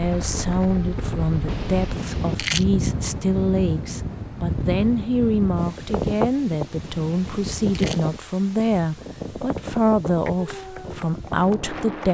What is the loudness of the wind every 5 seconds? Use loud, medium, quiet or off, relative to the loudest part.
loud, loud, medium.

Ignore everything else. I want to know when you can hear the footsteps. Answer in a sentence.
You can't hear the footsteps here.